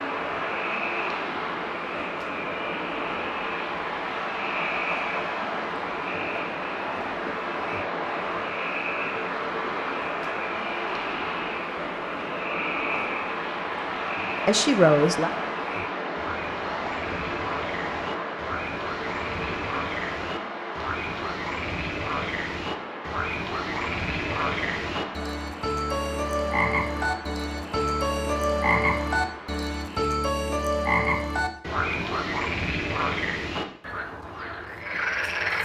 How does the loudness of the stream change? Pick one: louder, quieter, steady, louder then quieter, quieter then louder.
quieter.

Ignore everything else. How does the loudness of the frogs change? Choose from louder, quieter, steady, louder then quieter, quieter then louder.
louder.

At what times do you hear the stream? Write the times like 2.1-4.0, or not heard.
0.0-30.1.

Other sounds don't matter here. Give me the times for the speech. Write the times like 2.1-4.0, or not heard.
14.4-15.3.